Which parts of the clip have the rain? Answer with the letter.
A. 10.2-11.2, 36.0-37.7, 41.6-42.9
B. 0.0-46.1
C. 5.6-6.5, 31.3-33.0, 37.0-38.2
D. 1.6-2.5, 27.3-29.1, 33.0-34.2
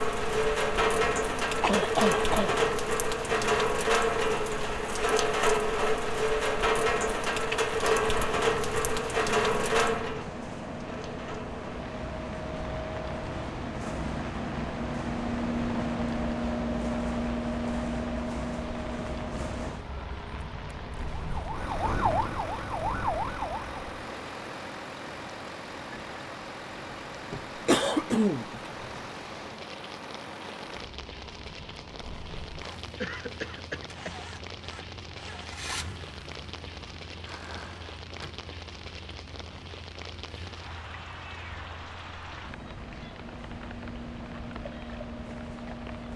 B.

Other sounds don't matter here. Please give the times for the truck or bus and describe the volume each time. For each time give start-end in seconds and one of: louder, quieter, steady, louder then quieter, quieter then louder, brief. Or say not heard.
0.0-46.1 louder then quieter.